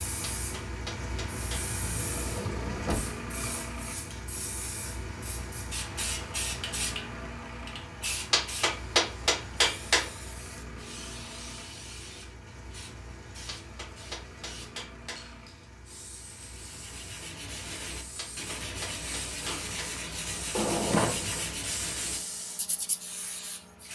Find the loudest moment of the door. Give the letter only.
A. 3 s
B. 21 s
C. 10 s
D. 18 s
B.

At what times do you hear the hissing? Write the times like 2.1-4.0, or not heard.
0.0-23.9.